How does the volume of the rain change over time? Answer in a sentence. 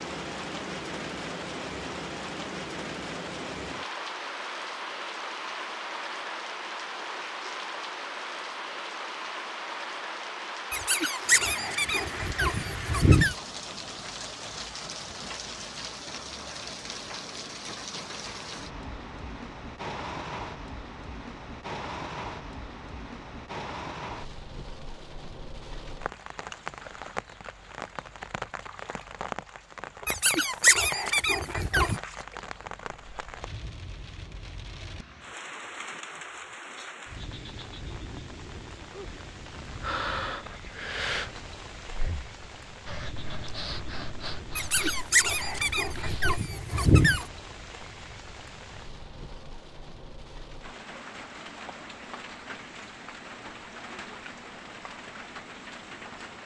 The loudness of the rain goes down.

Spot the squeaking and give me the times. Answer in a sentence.
You can hear the squeaking from 10.7 to 13.3 s, from 30.1 to 32.0 s and from 44.5 to 47.2 s.